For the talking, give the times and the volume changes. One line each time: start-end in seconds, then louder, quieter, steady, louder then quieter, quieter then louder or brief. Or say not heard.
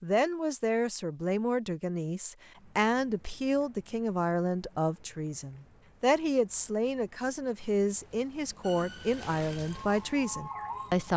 0.0-11.1 steady.